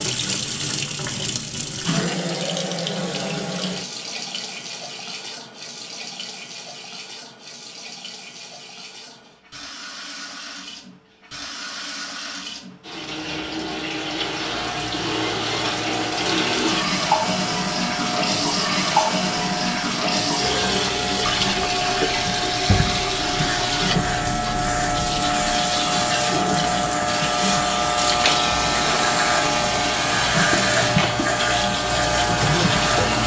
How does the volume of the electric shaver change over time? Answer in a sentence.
The volume of the electric shaver goes up.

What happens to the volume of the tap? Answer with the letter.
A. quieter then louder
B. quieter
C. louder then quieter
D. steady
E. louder
A.